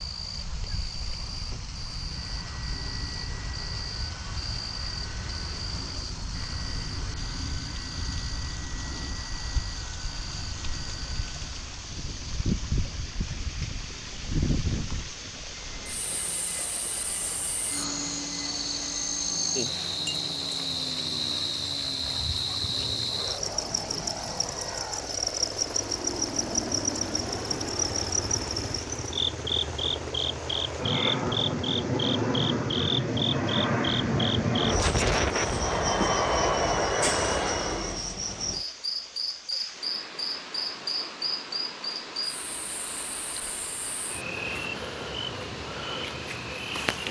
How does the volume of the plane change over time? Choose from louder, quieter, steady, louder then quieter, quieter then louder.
louder.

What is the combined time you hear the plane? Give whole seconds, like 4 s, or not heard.
36 s.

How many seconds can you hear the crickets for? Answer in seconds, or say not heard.
47 s.